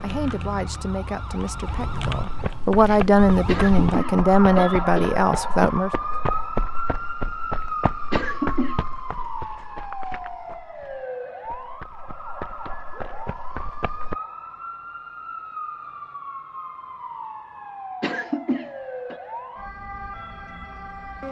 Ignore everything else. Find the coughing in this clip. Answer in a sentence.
The coughing can be heard from 3.5 to 5.1 s, from 8.1 to 8.8 s and from 18.0 to 19.1 s.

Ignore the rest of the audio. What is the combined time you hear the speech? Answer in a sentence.
You can hear the speech for 6 seconds altogether.